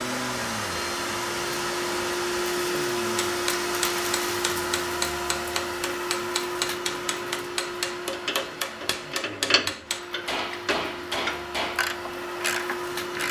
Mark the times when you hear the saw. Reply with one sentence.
You can't hear the saw here.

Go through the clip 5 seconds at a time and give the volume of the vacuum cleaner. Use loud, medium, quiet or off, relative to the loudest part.
loud, medium, medium.